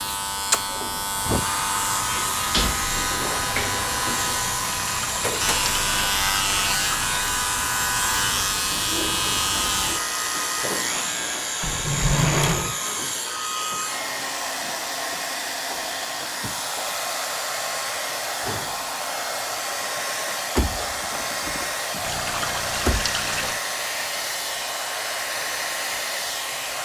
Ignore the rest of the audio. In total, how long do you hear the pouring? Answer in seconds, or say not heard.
4 s.